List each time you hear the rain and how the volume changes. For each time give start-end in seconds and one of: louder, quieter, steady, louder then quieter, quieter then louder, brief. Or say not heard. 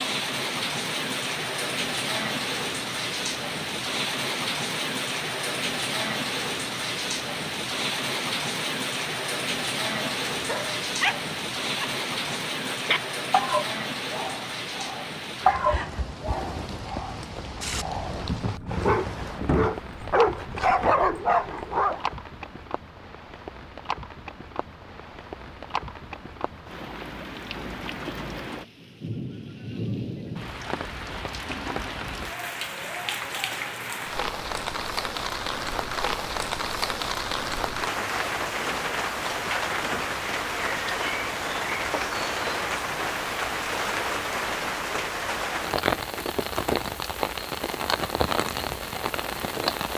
0.0-49.9 quieter then louder.